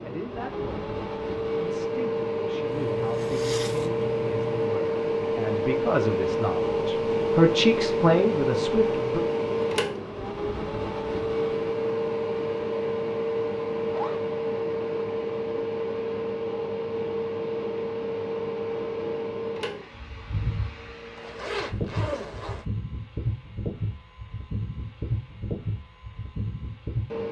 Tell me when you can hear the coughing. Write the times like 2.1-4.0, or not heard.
not heard.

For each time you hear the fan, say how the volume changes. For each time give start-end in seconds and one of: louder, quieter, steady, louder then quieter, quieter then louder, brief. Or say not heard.
0.0-27.2 quieter.